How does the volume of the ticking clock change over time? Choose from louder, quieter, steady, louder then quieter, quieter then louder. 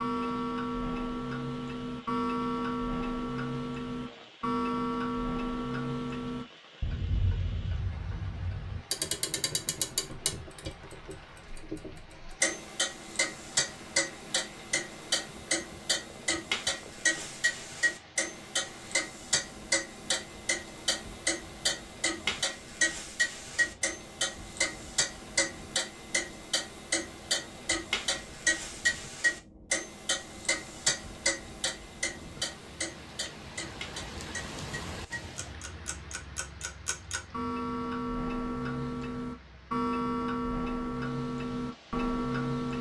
steady.